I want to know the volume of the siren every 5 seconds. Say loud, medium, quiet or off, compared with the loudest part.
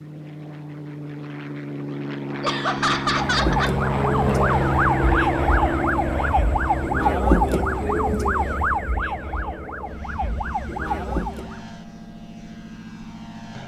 loud, loud, medium.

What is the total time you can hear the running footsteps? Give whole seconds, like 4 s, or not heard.
not heard.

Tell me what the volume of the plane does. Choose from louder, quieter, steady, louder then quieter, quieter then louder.
louder then quieter.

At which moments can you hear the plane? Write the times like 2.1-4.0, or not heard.
0.0-13.6.